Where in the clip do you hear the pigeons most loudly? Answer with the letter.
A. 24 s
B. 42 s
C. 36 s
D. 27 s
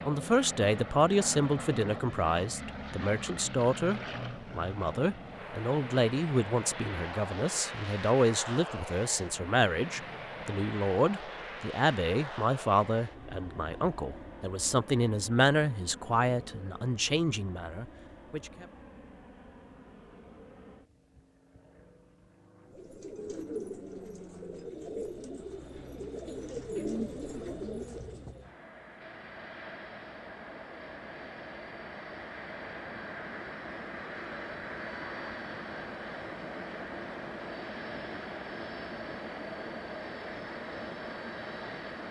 D.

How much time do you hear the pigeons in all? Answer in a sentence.
The pigeons can be heard for 6 seconds in total.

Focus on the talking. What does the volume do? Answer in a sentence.
The volume of the talking stays about the same.